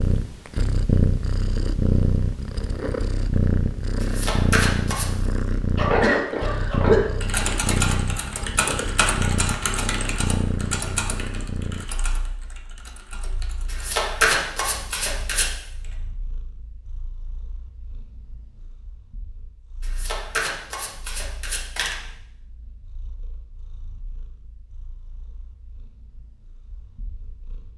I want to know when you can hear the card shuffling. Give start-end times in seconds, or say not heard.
4.0-5.1, 13.7-15.5, 19.8-21.9.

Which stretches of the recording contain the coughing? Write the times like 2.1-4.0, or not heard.
5.8-7.1.